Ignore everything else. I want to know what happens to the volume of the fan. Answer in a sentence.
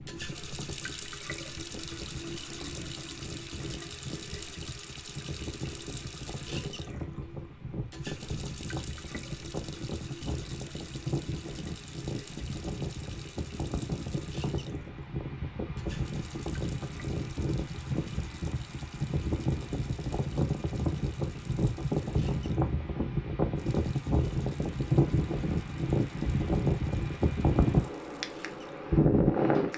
The loudness of the fan goes up.